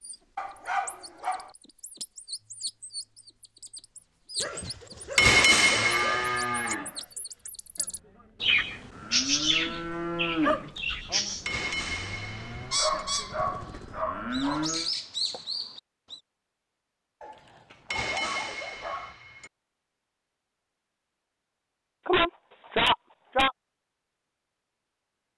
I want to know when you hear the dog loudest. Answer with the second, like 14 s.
23 s.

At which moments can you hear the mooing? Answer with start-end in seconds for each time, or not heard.
5.6-14.9.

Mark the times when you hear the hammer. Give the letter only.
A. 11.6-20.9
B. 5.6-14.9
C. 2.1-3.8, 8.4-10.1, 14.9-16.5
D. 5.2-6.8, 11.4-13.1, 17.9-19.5
D.